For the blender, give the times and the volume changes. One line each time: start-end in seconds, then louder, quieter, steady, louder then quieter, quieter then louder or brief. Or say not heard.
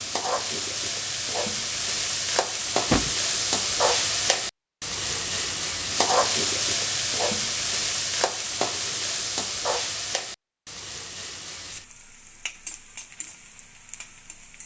not heard.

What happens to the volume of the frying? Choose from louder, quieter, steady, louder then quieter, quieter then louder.
quieter.